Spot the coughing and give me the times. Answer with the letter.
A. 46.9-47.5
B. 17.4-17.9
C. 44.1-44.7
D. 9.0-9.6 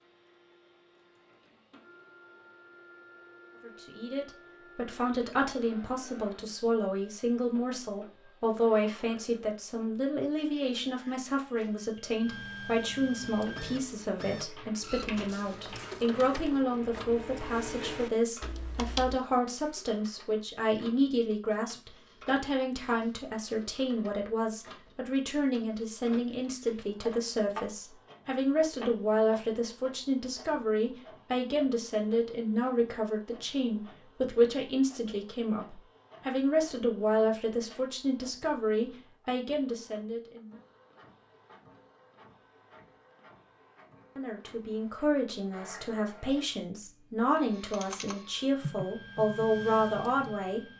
B.